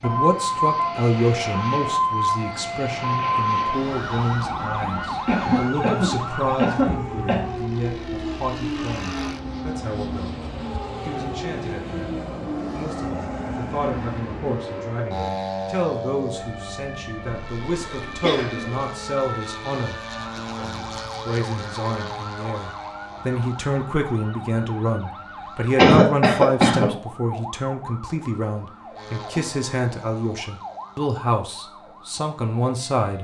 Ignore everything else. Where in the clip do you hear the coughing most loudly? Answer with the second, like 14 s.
26 s.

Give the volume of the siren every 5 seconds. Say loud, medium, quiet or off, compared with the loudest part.
loud, medium, medium, medium, quiet, quiet, quiet.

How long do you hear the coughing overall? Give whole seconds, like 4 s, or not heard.
5 s.